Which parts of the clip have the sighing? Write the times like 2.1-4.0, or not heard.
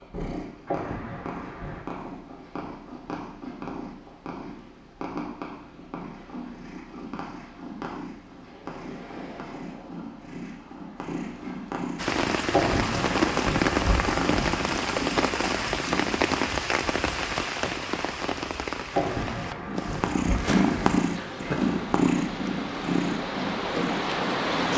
0.7-1.9, 12.5-14.7, 18.9-21.1.